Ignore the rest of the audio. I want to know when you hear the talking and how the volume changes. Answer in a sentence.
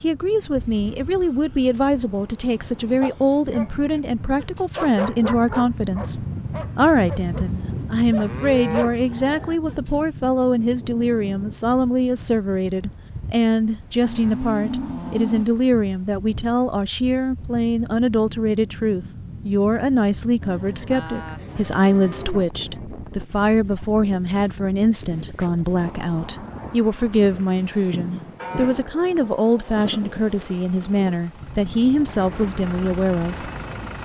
The talking can be heard from 0.0 to 33.5 s, at a steady volume.